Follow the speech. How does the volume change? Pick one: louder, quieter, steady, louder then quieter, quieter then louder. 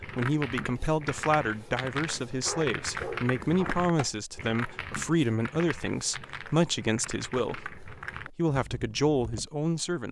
steady.